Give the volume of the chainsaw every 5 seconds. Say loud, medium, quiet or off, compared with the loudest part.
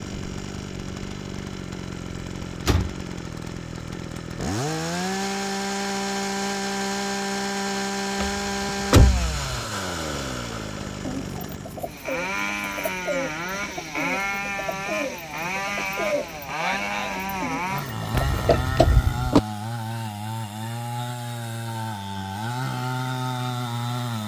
medium, loud, loud, loud, loud.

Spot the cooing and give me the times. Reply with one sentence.
You can hear the cooing from 11.0 to 18.2 s.